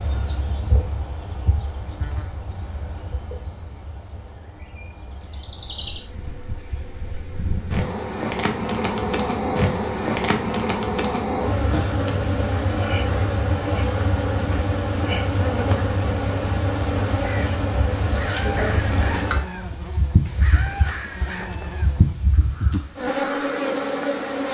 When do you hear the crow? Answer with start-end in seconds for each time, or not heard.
17.2-23.6.